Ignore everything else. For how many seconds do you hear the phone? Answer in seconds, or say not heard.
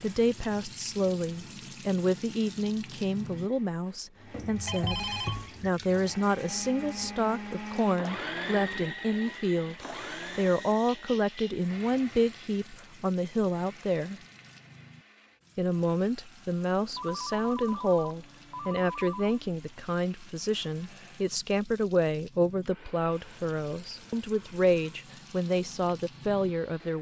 3 s.